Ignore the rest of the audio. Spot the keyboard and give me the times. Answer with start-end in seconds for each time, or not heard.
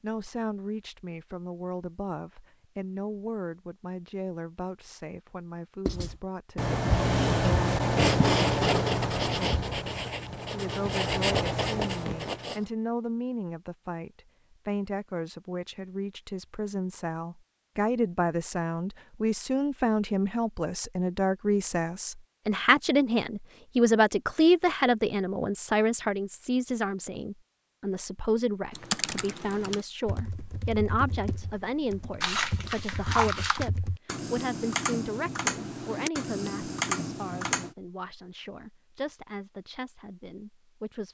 28.7-37.8.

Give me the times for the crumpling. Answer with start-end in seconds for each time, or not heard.
32.2-33.7.